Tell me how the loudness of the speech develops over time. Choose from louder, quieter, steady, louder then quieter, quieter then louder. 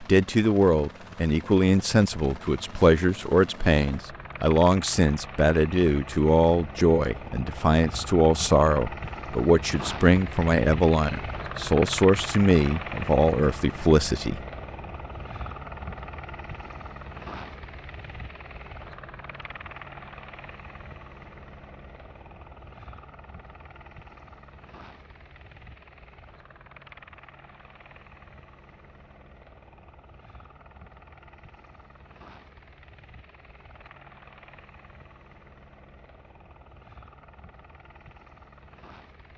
steady.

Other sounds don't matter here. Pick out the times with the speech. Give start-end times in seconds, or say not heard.
0.0-14.4.